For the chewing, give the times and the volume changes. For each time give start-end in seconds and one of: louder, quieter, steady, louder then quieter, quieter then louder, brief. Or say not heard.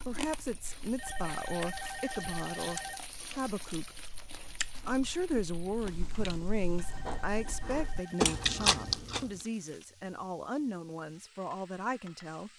0.0-9.4 louder.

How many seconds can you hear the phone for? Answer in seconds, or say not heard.
4 s.